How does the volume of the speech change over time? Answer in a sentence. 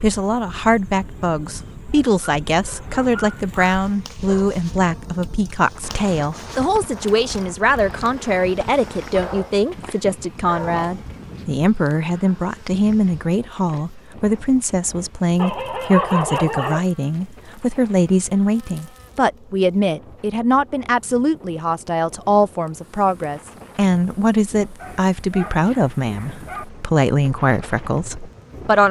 The volume of the speech stays about the same.